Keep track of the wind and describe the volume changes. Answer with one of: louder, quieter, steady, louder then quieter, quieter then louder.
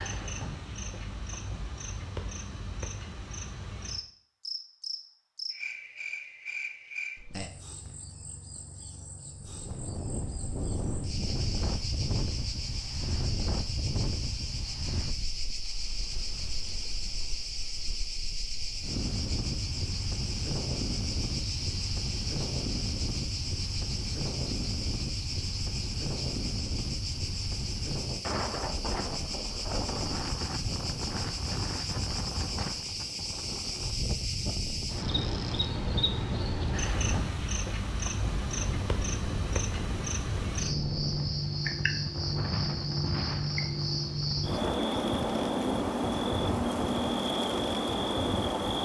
steady.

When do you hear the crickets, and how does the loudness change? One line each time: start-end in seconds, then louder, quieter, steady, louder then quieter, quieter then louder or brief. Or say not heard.
0.0-48.8 louder.